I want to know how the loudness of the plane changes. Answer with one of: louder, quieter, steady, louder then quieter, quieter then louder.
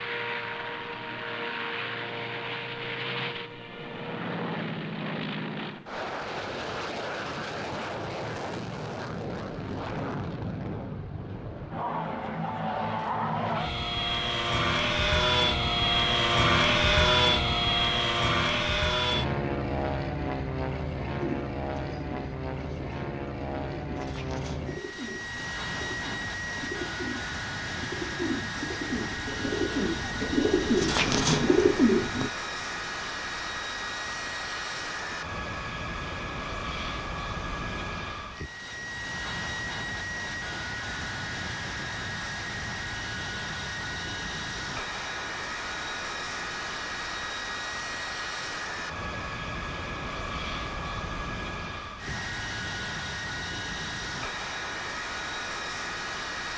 louder then quieter.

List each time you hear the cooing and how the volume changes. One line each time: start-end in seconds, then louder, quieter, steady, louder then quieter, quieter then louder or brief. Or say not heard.
21.2-32.3 louder.